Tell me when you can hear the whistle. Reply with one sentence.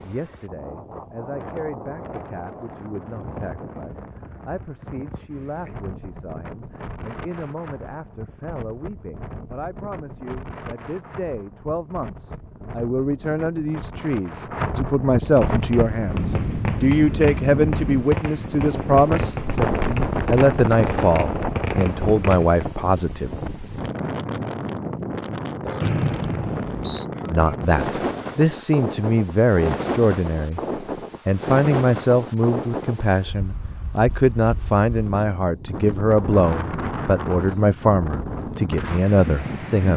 You can hear the whistle from 25.8 to 27.1 s.